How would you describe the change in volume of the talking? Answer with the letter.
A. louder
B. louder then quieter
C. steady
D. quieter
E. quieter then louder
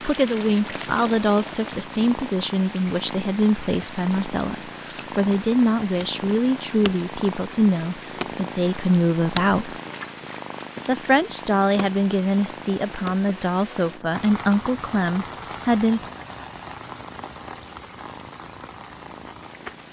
C.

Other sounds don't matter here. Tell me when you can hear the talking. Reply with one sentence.
The talking can be heard from 0.0 to 9.8 s and from 10.8 to 16.0 s.